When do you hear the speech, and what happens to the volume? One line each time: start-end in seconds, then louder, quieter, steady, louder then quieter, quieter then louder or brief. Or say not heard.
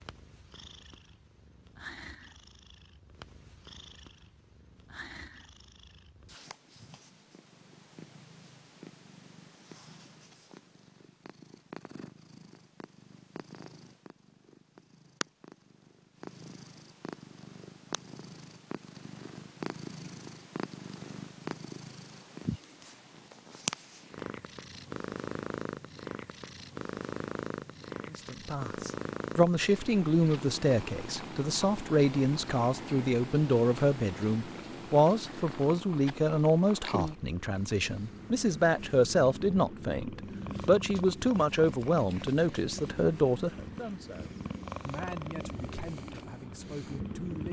28.1-47.4 quieter.